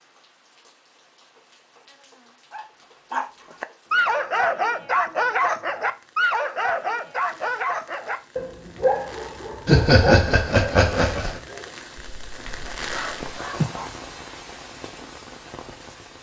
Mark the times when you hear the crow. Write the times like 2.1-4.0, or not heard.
not heard.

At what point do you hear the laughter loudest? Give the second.
10 s.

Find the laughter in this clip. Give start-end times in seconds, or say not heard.
9.7-11.4.